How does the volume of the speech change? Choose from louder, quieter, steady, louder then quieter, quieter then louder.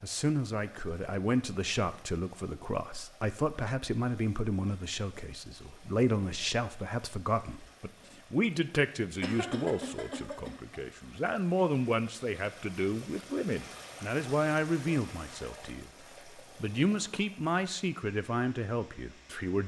steady.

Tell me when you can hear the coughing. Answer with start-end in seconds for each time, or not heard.
9.2-10.5.